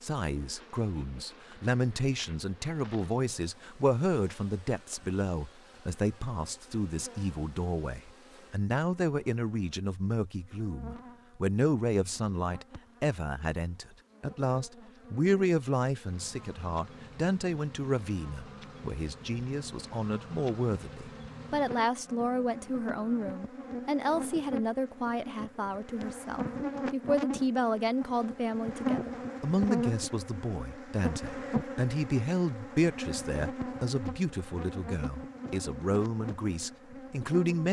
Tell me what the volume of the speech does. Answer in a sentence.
The volume of the speech stays about the same.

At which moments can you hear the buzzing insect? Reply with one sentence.
You can hear the buzzing insect from 0.0 to 37.6 s.